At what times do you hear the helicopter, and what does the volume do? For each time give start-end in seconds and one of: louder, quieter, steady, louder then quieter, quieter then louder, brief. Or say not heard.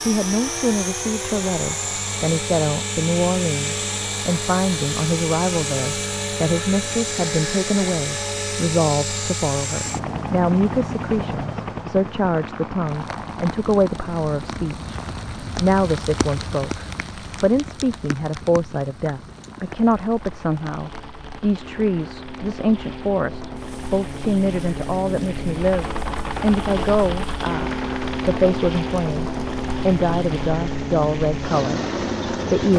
0.0-32.7 quieter then louder.